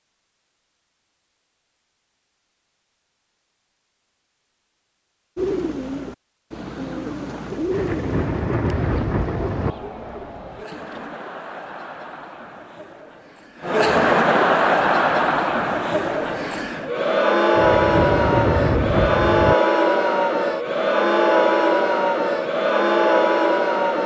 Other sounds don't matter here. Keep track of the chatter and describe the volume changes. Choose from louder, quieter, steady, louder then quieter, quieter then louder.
louder.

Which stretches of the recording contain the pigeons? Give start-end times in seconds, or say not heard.
5.3-11.2.